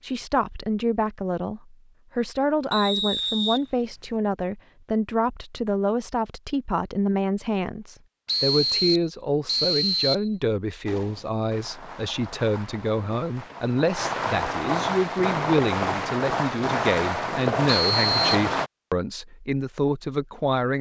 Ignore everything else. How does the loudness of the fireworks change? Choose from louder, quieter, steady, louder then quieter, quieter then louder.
louder.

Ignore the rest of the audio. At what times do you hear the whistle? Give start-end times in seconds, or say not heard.
2.7-4.1, 8.2-10.3, 17.6-18.3.